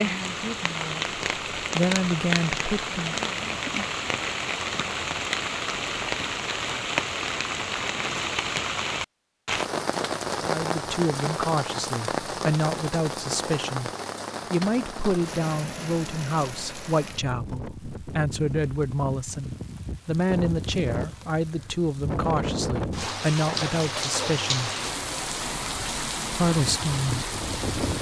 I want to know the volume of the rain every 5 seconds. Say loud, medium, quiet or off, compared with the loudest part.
loud, loud, loud, medium, loud, loud.